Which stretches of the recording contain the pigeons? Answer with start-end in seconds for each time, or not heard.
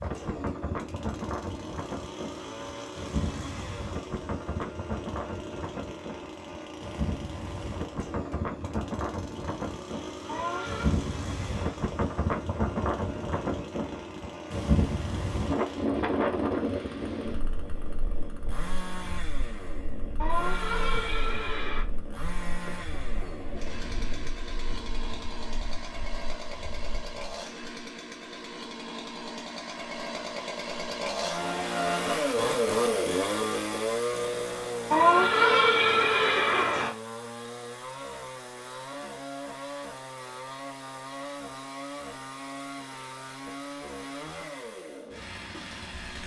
22.6-24.4.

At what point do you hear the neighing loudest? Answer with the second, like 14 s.
35 s.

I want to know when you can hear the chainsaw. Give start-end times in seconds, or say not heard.
0.0-46.2.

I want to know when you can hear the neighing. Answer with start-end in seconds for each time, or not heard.
10.2-10.9, 20.1-21.9, 34.9-36.9.